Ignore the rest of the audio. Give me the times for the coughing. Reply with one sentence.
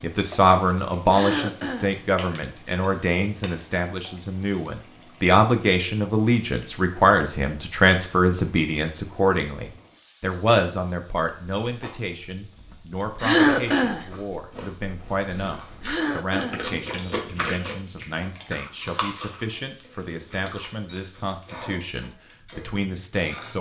The coughing can be heard from 1.1 to 1.9 s, from 13.2 to 14.1 s and from 15.8 to 16.6 s.